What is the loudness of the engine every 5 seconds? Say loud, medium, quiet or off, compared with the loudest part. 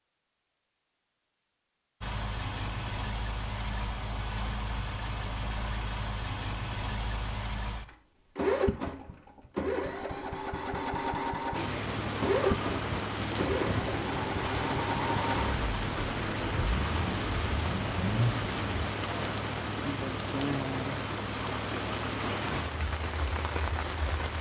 medium, loud, loud, loud, off.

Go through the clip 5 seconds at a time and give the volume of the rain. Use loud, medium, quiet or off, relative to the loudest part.
off, off, loud, loud, loud.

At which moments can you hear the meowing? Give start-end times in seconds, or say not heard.
not heard.